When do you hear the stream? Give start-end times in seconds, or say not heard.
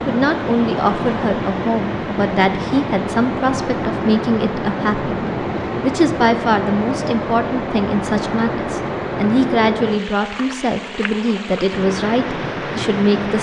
0.0-13.3.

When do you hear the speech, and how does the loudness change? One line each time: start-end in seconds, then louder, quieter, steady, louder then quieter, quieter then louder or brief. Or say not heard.
0.1-13.3 steady.